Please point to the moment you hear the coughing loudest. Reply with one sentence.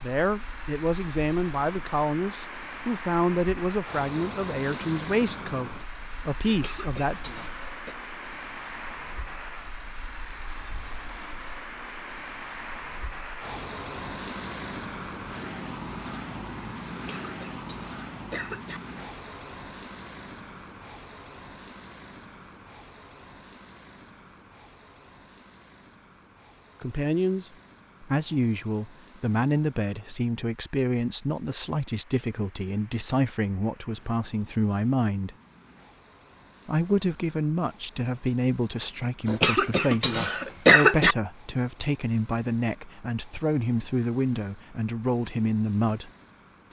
The volume of the coughing peaks at 41 seconds.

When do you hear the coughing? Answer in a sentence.
The coughing can be heard from 6.5 to 8.0 s, from 16.9 to 18.8 s and from 39.2 to 41.1 s.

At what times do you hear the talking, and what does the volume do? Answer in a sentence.
The talking can be heard from 0.0 to 7.2 s, at a steady volume; from 26.8 to 35.4 s, at a steady volume; and from 36.6 to 46.1 s, at a steady volume.